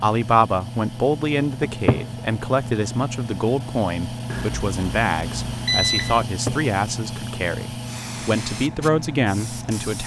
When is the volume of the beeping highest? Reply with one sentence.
The volume of the beeping peaks at 6 seconds.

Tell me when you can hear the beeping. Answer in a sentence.
You can hear the beeping from 4.3 to 6.2 s.